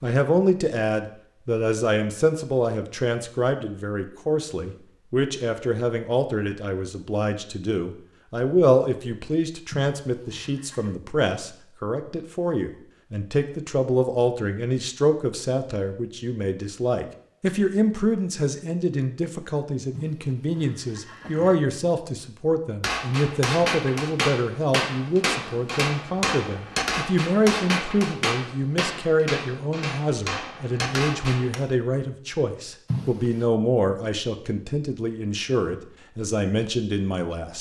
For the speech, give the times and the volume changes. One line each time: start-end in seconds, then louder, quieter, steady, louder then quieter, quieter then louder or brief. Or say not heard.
0.0-37.5 steady.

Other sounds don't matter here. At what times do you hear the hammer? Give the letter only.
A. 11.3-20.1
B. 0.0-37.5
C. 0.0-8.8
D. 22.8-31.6
D.